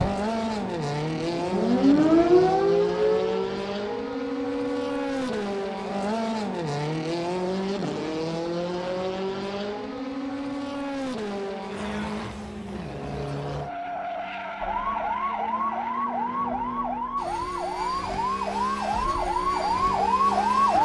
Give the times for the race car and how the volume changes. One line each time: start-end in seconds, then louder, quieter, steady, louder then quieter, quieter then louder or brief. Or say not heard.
0.0-20.7 quieter.